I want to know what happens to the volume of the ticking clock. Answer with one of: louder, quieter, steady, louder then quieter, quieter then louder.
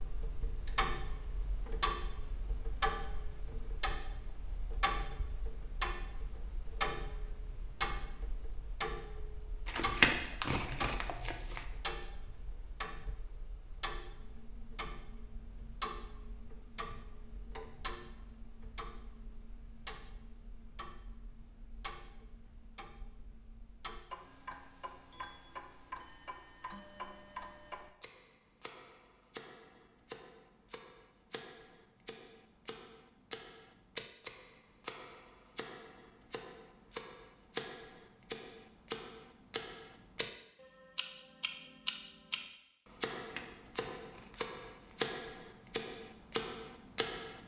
quieter then louder.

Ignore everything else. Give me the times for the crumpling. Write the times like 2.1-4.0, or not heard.
9.7-11.7, 43.1-45.0.